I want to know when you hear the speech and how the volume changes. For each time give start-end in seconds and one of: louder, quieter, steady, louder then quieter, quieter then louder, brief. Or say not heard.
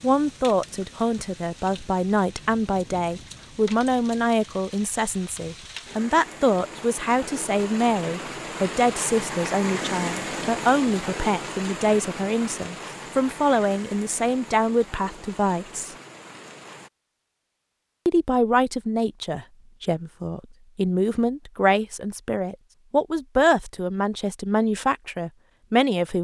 0.0-15.9 steady
18.1-26.1 steady.